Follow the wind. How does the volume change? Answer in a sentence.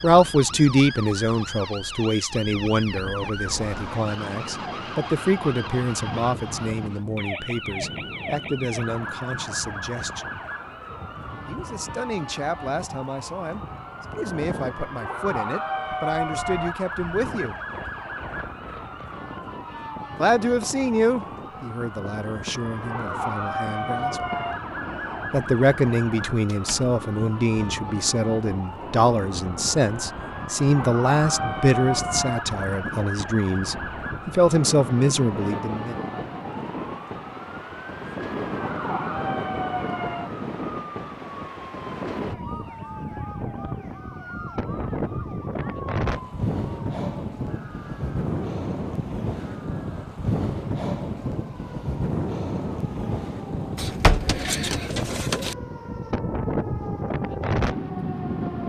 The loudness of the wind goes up.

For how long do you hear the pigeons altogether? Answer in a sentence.
You can hear the pigeons for 2 seconds altogether.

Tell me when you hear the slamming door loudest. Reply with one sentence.
The loudest moment of the slamming door is at 54 seconds.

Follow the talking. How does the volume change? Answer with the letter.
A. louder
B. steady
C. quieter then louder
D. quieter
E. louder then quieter
C.